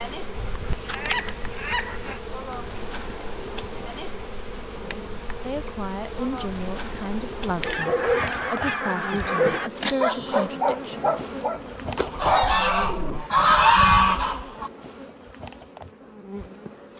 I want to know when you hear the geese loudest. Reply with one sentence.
The volume of the geese peaks at 14 seconds.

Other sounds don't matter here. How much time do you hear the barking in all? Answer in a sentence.
You can hear the barking for 6 seconds altogether.